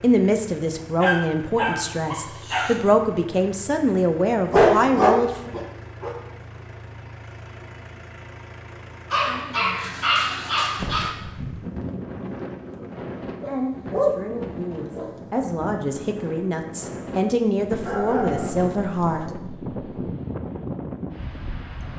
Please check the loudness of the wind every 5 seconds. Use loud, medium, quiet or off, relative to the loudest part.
off, off, loud, loud, loud.